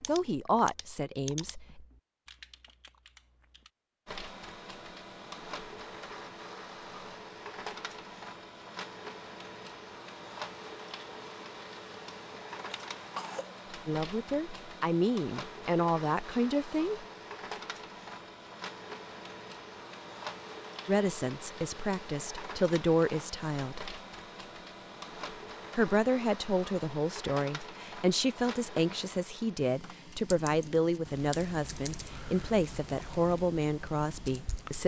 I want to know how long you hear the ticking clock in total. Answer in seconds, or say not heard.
not heard.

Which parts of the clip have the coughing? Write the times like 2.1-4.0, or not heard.
12.7-13.6.